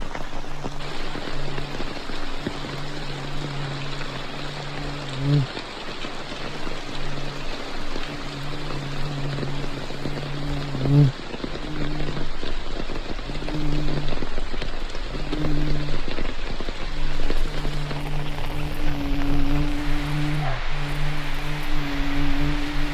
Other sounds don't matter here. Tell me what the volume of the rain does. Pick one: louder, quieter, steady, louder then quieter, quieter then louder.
steady.